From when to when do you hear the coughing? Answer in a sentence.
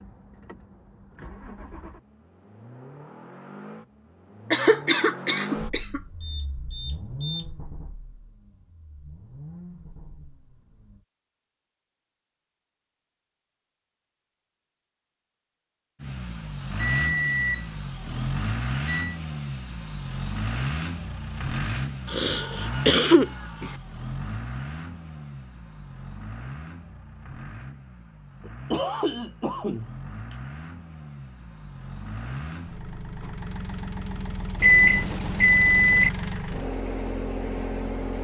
The coughing can be heard from 4.5 to 6.0 s, from 22.1 to 23.7 s and from 28.4 to 30.4 s.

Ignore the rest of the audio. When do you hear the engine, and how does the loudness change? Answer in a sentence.
You can hear the engine from 0.0 to 11.1 s, getting louder then quieter; and from 16.0 to 38.1 s, getting quieter then louder.